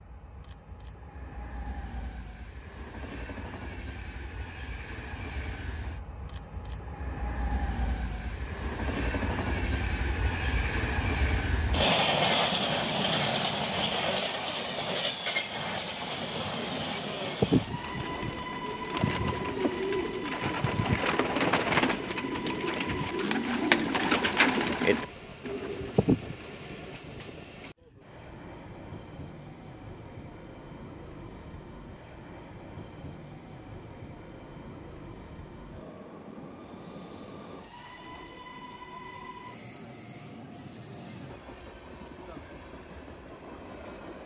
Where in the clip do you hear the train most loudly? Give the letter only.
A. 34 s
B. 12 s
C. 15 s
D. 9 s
B.